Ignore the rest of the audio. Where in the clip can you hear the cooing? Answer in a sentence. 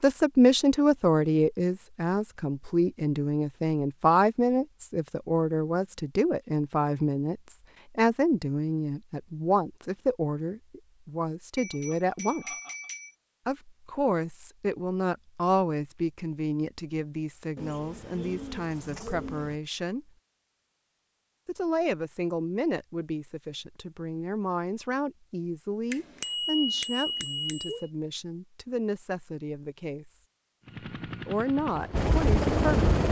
You can hear the cooing from 17.6 to 19.6 s.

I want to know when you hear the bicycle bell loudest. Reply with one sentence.
The loudest moment of the bicycle bell is at 27 seconds.